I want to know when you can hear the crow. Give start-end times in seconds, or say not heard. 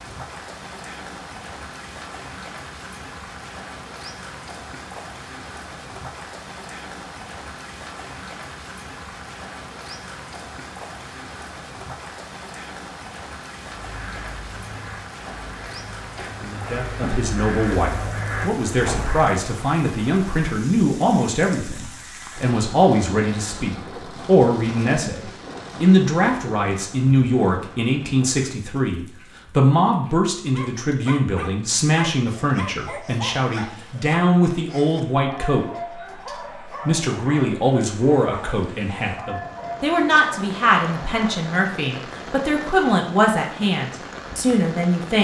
13.8-19.4.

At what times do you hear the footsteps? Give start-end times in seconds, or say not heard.
not heard.